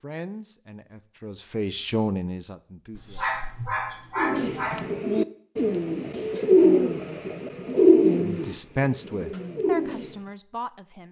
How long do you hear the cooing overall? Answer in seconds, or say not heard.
6 s.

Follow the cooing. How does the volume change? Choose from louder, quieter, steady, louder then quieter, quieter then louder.
louder then quieter.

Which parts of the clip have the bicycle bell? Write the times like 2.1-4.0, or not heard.
not heard.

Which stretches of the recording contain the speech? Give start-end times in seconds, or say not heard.
0.0-3.2, 8.2-11.0.